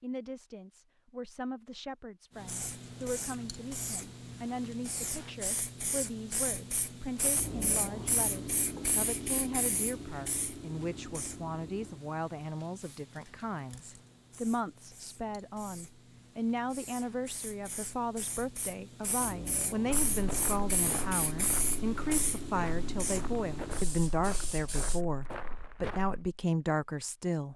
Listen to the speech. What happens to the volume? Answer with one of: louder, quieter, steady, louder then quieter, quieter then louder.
louder.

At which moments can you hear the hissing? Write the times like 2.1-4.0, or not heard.
2.4-25.0.